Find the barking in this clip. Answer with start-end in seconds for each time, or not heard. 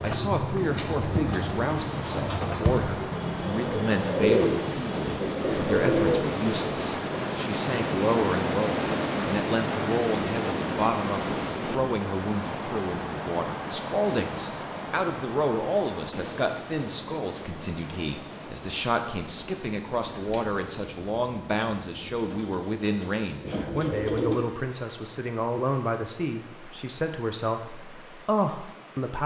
not heard.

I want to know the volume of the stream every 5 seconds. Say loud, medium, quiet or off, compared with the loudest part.
medium, loud, loud, medium, quiet, quiet.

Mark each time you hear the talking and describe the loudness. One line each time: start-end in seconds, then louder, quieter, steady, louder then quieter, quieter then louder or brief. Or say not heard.
0.0-29.2 steady.